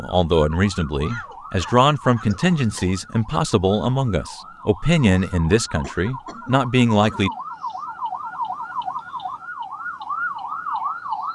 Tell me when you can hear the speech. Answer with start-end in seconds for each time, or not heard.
0.0-7.3.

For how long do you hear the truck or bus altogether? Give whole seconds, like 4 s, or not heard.
not heard.